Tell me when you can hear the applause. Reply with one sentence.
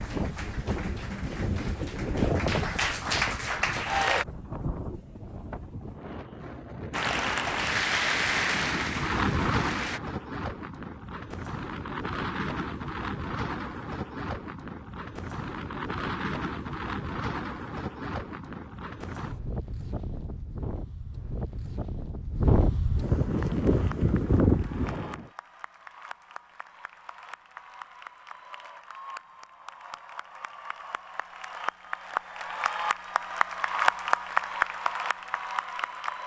The applause can be heard from 0.0 to 4.2 s, from 6.9 to 10.0 s and from 23.3 to 36.2 s.